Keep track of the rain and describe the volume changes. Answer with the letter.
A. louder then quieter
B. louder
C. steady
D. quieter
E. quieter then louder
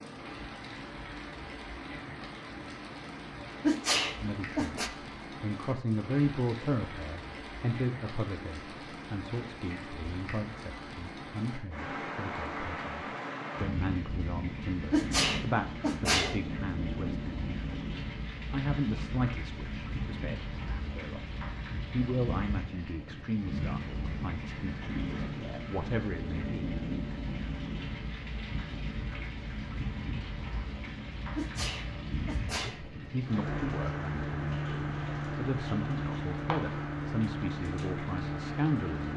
B.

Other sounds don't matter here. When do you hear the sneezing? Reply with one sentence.
The sneezing can be heard from 3.6 to 4.9 s, from 14.9 to 16.4 s and from 31.4 to 32.8 s.